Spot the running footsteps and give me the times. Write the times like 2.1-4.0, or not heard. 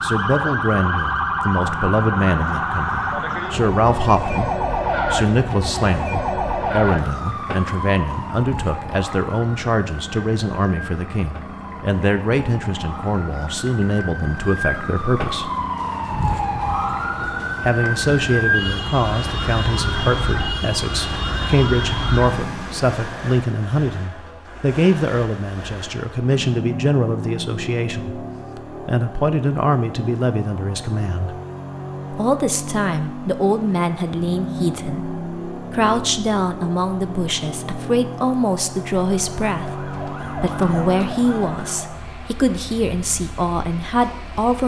not heard.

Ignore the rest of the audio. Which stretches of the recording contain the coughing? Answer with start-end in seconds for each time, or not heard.
not heard.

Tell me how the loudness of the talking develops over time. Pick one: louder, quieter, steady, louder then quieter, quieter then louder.
steady.